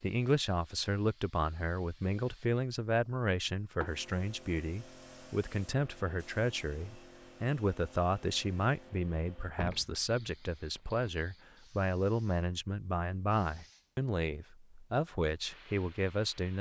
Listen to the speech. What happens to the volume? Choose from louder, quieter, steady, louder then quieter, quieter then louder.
steady.